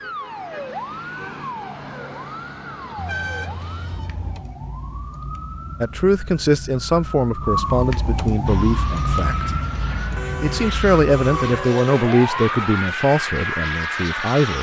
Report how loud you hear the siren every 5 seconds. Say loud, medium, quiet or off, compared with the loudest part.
medium, loud, loud.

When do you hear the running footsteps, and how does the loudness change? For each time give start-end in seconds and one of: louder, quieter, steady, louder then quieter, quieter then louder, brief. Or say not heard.
not heard.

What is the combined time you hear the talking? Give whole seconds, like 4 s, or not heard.
8 s.